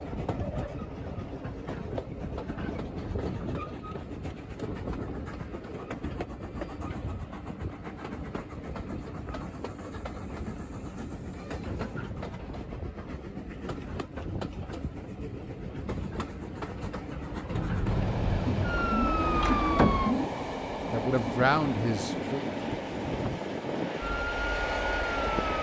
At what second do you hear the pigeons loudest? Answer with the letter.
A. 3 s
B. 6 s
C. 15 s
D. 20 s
D.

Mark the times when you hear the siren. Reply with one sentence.
The siren can be heard from 17.5 to 20.1 s and from 23.9 to 25.5 s.